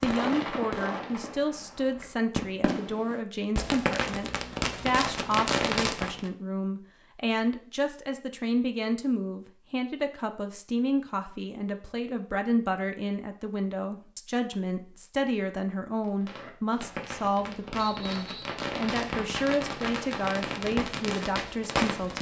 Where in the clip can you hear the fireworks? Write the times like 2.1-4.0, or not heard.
0.0-6.3, 16.0-22.1.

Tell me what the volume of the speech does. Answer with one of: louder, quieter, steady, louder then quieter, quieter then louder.
steady.